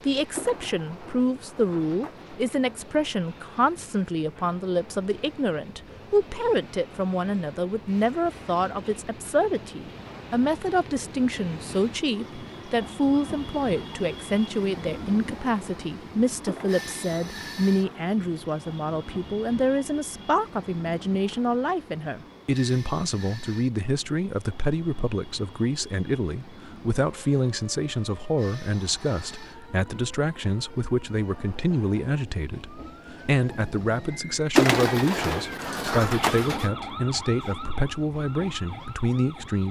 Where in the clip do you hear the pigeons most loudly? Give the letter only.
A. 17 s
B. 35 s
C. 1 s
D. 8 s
B.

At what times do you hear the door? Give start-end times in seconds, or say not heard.
not heard.